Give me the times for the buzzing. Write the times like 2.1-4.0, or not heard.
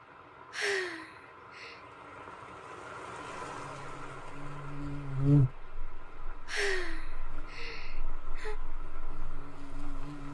3.4-10.2.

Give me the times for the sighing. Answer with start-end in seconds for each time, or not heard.
0.5-1.8, 6.5-8.6.